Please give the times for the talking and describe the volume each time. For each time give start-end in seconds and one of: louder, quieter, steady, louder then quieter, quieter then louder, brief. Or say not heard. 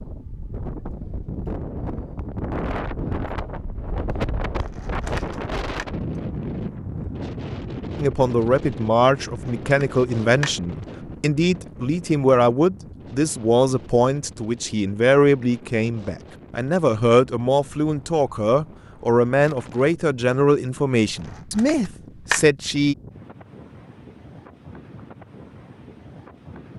8.0-22.9 steady.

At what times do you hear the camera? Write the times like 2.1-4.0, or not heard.
4.5-5.8, 9.4-10.6, 21.4-22.4.